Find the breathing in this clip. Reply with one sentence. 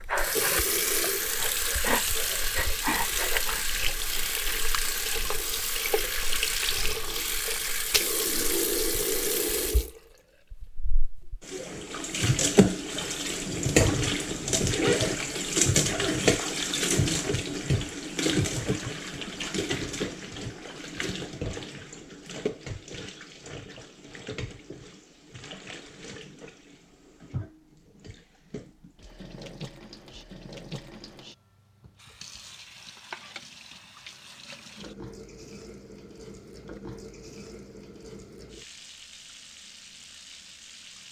You can hear the breathing from 0.0 to 3.6 s.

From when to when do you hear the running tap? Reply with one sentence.
You can hear the running tap from 0.0 to 41.0 s.